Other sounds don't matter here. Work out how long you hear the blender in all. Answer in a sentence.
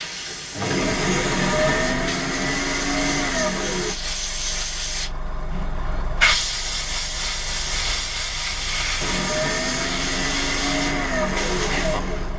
The blender can be heard for 7 seconds in total.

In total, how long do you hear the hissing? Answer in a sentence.
The hissing can be heard for 12 seconds in total.